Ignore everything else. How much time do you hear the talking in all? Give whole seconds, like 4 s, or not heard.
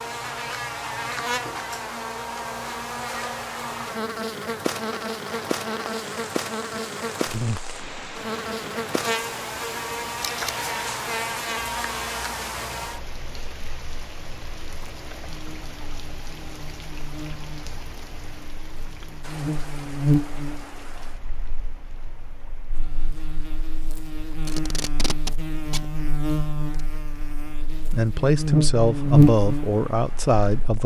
3 s.